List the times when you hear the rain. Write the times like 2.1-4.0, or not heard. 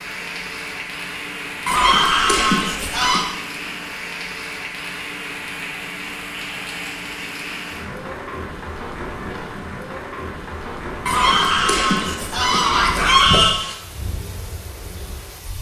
0.0-15.5.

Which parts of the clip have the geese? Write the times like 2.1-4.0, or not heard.
1.6-3.2, 11.1-13.6.